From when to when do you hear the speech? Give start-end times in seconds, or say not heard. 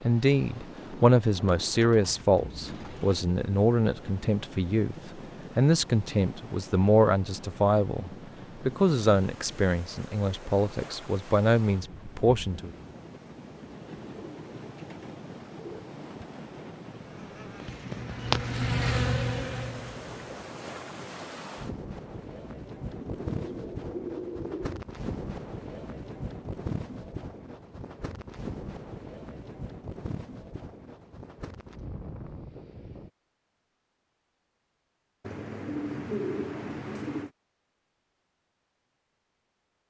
0.0-12.7.